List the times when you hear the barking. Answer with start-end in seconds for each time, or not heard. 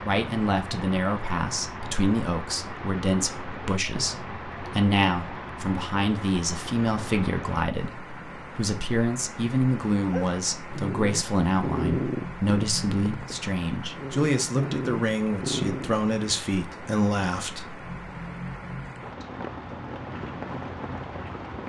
10.0-16.0.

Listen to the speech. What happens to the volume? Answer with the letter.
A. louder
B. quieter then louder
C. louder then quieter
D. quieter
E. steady
E.